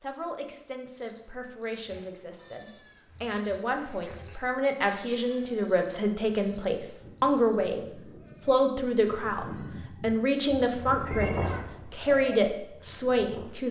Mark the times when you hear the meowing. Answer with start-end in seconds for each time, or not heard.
11.1-11.8.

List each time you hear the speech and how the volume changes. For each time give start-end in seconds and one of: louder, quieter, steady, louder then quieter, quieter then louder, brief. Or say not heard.
0.0-13.6 louder.